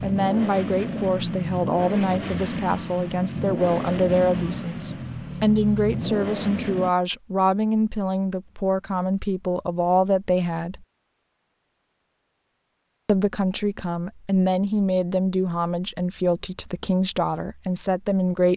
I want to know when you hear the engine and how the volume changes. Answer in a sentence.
The engine can be heard from 0.0 to 6.9 s, at a steady volume.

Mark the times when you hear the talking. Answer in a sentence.
You can hear the talking from 0.0 to 10.8 s and from 13.1 to 18.5 s.